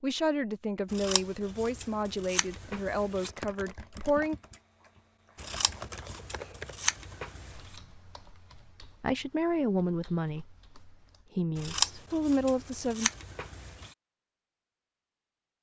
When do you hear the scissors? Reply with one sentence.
The scissors can be heard from 0.9 to 3.3 s, from 5.3 to 7.7 s and from 11.6 to 13.9 s.